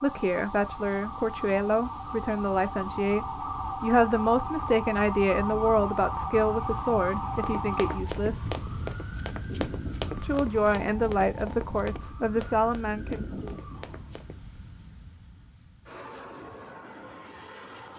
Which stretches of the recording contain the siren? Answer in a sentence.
You can hear the siren from 0.0 to 14.4 s.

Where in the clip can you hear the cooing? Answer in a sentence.
You can't hear the cooing here.